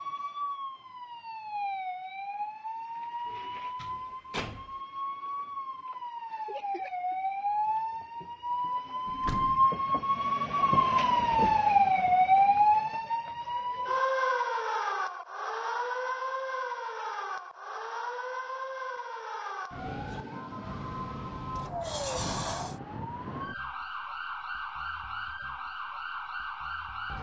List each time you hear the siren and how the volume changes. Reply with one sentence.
The siren can be heard from 0.0 to 27.1 s, getting louder then quieter.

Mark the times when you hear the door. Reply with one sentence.
The door can be heard from 3.2 to 4.8 s, from 9.1 to 9.7 s and from 21.6 to 22.8 s.